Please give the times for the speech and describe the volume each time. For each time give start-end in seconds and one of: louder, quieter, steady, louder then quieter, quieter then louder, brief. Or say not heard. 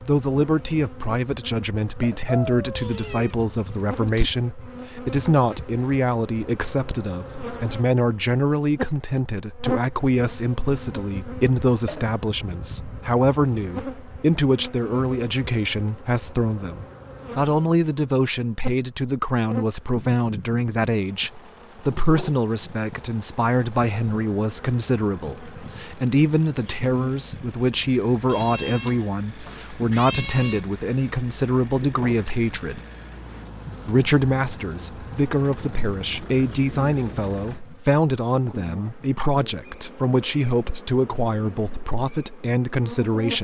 0.0-32.8 steady
33.9-43.3 steady.